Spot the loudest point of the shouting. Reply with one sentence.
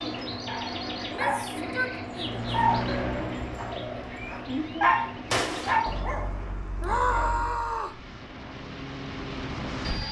The loudest moment of the shouting is at 7 seconds.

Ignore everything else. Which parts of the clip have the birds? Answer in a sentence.
You can hear the birds from 0.0 to 6.0 s.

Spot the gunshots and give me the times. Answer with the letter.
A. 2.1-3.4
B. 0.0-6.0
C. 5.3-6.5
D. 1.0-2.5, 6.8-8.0
C.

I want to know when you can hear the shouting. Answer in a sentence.
You can hear the shouting from 1.0 to 2.5 s and from 6.8 to 8.0 s.